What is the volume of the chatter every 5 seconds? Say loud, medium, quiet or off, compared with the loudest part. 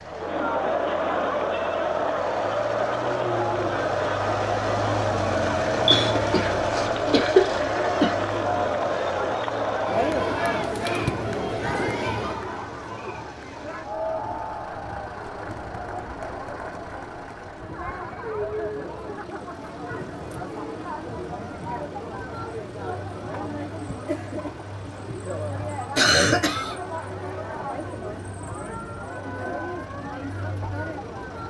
loud, loud, loud, medium, medium, medium, medium.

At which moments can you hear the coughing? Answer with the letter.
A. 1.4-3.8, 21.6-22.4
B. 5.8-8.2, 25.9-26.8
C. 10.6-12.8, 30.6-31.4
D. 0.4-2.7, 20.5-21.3
B.